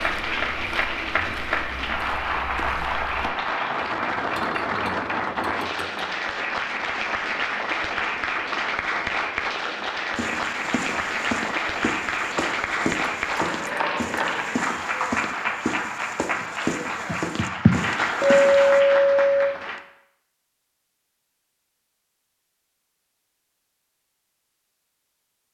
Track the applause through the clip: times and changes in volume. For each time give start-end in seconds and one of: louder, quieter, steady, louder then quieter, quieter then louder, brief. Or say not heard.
0.0-19.8 steady.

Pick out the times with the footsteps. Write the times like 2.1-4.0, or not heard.
0.0-3.3, 10.2-18.8.